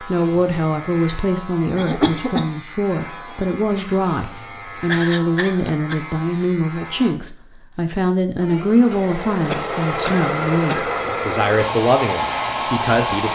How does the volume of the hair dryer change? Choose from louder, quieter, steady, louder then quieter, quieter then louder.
louder.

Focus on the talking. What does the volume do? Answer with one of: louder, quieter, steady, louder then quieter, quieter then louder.
steady.